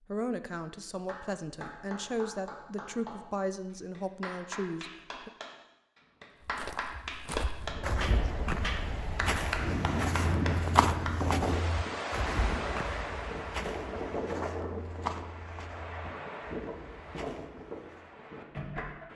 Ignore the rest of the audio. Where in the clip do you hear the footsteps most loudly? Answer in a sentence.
The volume of the footsteps peaks at 11 seconds.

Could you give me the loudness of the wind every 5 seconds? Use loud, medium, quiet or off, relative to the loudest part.
off, medium, loud, medium.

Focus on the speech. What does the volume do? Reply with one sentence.
The volume of the speech stays about the same.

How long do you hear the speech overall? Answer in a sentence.
You can hear the speech for 5 seconds altogether.